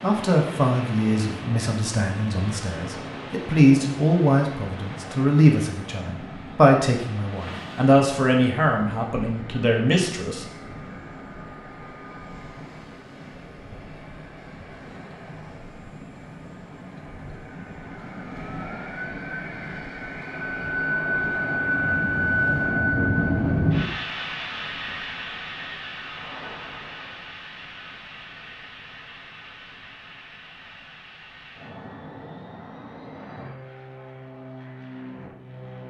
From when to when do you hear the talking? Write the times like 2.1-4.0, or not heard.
0.0-10.4.